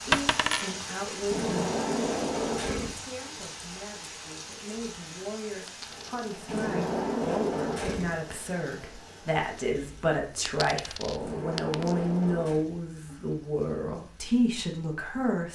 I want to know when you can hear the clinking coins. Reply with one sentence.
The clinking coins can be heard from 0.1 to 0.8 s, from 5.7 to 6.2 s and from 10.4 to 11.9 s.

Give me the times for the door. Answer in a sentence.
The door can be heard from 1.3 to 3.0 s, from 6.5 to 8.2 s and from 11.2 to 12.7 s.